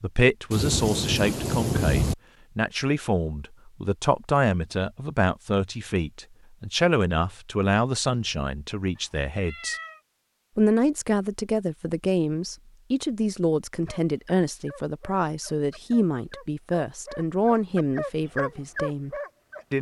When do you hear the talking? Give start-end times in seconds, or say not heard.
0.0-9.8, 10.6-19.1.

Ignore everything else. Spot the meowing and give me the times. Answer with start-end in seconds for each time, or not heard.
8.9-10.0.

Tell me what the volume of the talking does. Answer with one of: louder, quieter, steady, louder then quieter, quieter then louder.
steady.